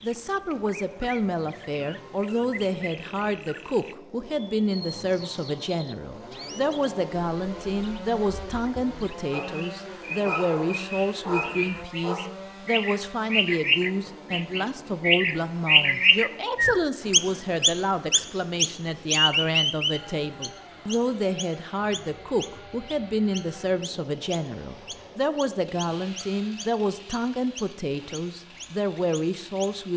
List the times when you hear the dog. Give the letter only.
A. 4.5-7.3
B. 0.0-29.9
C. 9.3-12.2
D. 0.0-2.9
C.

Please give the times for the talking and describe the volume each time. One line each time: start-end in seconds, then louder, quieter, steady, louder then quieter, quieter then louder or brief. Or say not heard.
0.0-29.9 steady.